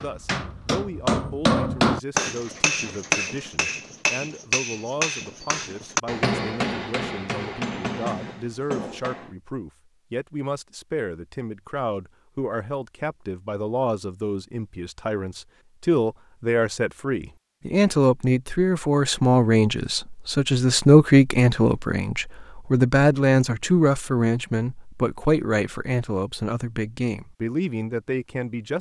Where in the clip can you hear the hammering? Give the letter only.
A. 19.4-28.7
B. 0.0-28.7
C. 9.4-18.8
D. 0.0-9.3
D.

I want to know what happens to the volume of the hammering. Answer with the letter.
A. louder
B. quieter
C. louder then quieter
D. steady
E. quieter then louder
B.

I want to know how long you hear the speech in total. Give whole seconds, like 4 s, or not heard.
29 s.